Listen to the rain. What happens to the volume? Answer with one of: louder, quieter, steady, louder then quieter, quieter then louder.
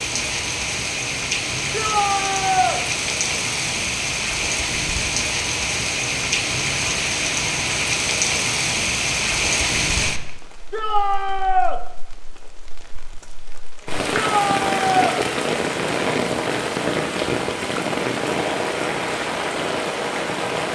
steady.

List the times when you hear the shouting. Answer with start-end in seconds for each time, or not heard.
1.7-2.8, 10.7-11.8, 14.1-15.2.